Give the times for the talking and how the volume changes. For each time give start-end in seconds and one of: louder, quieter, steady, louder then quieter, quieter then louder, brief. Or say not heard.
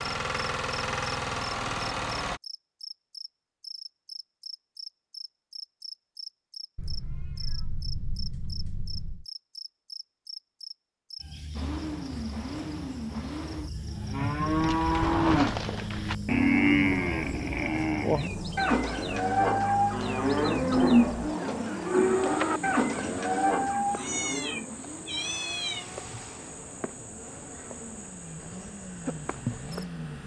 not heard.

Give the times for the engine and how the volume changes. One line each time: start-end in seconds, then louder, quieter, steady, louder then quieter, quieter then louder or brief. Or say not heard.
0.0-2.4 brief
11.5-30.2 quieter.